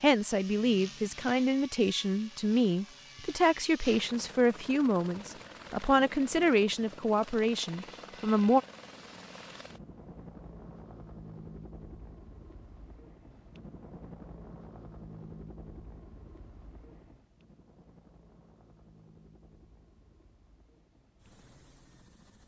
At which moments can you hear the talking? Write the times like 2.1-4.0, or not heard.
0.0-8.6.